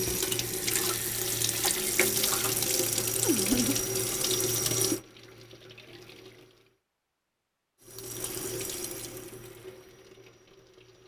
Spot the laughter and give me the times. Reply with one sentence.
You can hear the laughter from 3.2 to 3.8 s.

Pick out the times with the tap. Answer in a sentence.
You can hear the tap from 0.0 to 6.8 s and from 7.8 to 11.0 s.